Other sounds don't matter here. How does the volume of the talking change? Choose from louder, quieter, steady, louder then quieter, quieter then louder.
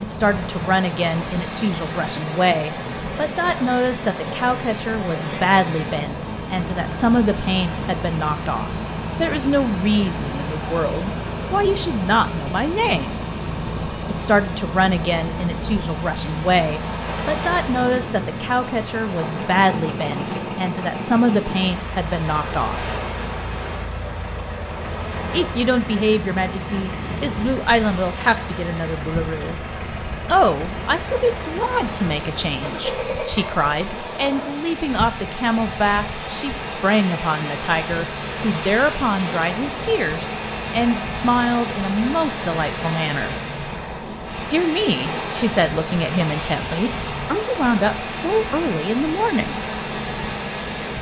steady.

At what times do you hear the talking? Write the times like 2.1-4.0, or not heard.
0.0-13.2, 14.1-22.9, 25.3-29.6, 30.2-43.4, 44.5-49.6.